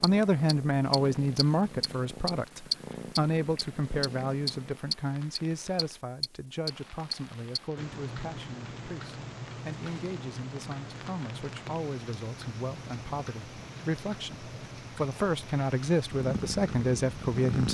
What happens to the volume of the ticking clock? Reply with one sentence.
The loudness of the ticking clock goes down.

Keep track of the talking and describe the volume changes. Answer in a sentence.
The loudness of the talking goes down, then up.